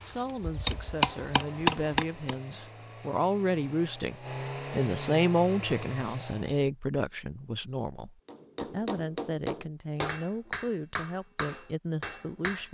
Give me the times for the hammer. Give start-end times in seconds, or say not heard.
0.0-2.4, 8.2-12.6.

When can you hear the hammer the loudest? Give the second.
2 s.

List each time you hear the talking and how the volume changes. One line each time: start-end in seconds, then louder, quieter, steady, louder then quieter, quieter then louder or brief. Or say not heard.
0.0-12.6 louder then quieter.